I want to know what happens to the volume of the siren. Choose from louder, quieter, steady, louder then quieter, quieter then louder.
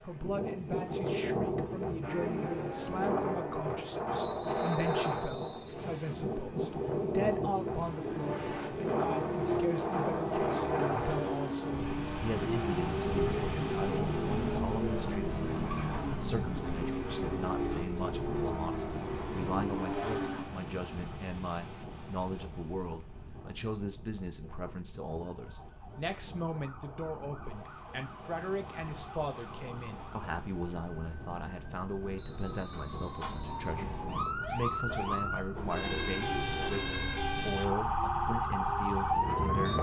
louder.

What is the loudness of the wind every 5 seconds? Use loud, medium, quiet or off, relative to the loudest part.
loud, loud, loud, medium, quiet, quiet, quiet, medium.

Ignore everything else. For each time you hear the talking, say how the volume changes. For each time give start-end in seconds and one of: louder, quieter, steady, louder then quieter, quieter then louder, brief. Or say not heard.
0.0-39.7 steady.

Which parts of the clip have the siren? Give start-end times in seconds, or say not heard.
25.2-39.7.